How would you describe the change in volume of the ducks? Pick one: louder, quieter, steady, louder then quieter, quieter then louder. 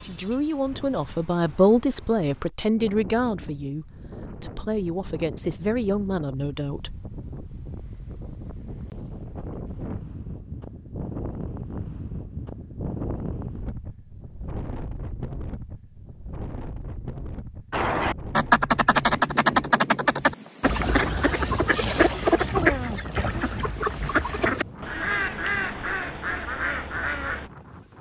quieter.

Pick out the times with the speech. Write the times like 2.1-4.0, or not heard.
0.0-7.0.